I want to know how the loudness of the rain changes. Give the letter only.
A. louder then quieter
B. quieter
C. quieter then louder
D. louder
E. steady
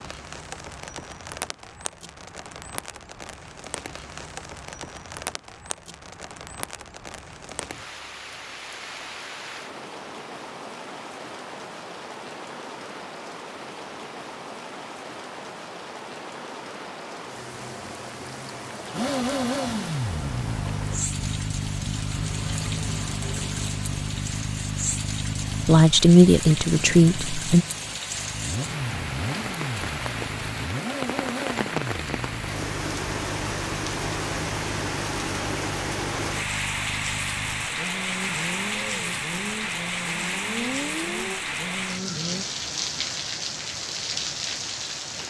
D.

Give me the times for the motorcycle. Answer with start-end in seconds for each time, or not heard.
18.9-42.5.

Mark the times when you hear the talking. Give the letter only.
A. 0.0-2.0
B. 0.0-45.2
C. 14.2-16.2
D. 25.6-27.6
D.